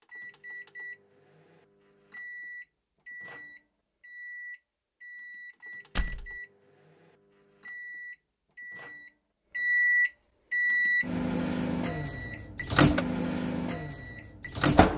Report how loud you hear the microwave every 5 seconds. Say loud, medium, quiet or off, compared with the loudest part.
quiet, medium, loud.